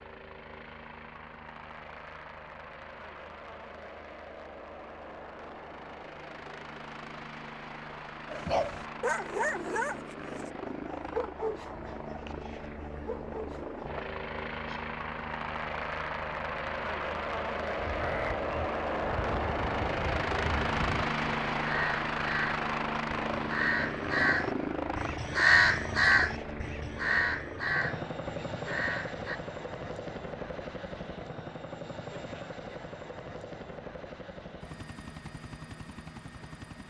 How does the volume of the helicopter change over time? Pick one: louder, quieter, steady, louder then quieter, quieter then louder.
louder then quieter.